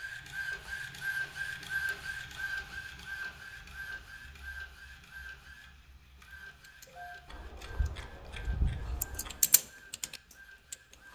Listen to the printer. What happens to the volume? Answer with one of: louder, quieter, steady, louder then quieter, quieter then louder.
quieter.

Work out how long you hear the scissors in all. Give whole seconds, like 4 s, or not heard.
2 s.